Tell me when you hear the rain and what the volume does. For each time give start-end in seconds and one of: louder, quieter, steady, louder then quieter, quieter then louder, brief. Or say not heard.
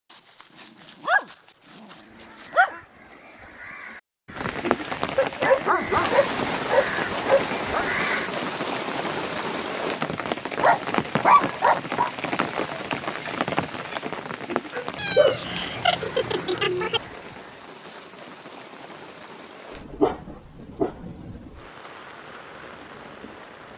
4.3-23.7 quieter.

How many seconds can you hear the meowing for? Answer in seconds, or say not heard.
2 s.